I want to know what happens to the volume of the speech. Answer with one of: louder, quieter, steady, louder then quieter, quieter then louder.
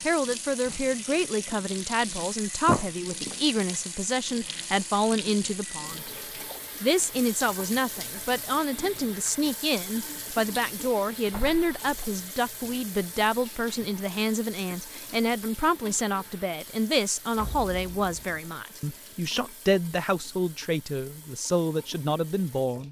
steady.